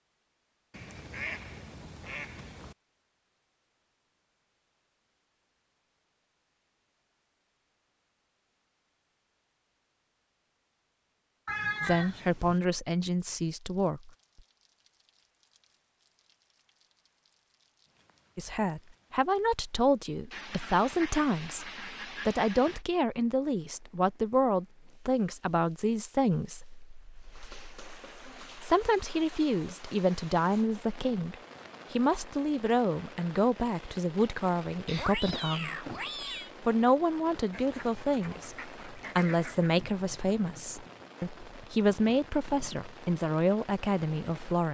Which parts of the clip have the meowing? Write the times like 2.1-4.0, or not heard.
11.4-12.6, 34.9-36.5.